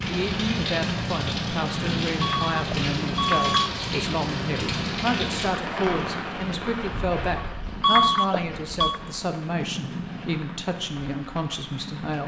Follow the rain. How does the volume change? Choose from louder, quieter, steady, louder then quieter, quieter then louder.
quieter.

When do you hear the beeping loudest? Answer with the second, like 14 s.
8 s.